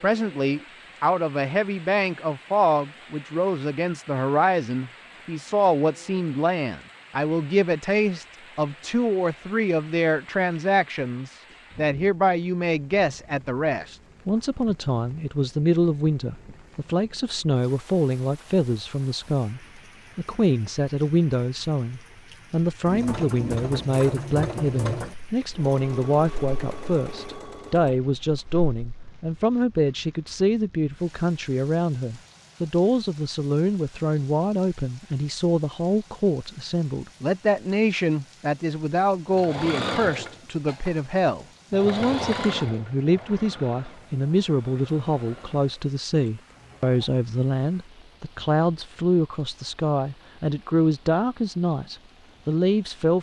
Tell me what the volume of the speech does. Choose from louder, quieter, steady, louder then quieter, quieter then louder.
steady.